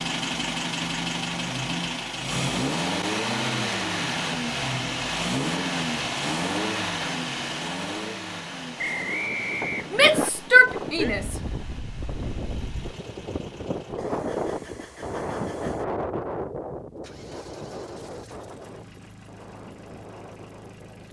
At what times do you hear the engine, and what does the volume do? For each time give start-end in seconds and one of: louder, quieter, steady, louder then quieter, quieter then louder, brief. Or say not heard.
0.0-21.0 quieter.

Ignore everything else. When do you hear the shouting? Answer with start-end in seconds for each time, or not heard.
9.9-11.3.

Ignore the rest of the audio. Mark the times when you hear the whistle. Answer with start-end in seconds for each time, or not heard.
8.8-10.3.